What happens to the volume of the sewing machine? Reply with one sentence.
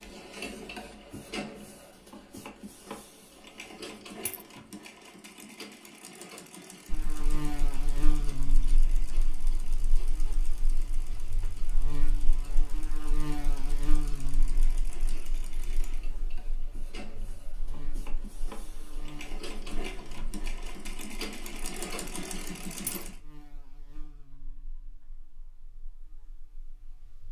The volume of the sewing machine goes down, then up.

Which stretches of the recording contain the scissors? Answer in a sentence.
The scissors can't be heard in this clip.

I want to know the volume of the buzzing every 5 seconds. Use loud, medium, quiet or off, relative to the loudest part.
off, loud, loud, quiet, quiet, quiet.